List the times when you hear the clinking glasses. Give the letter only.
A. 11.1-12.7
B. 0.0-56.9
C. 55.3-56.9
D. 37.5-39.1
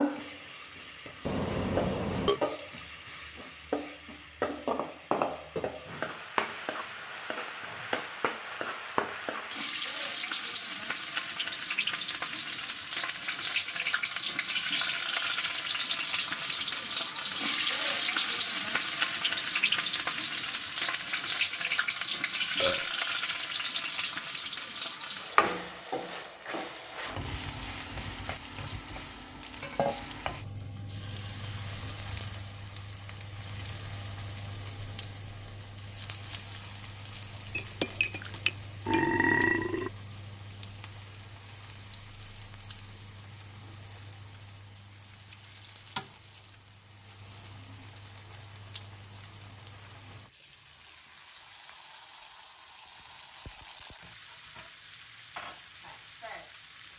D.